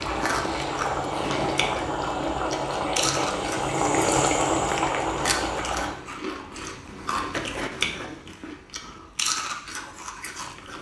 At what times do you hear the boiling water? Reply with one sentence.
You can hear the boiling water from 0.0 to 6.0 s.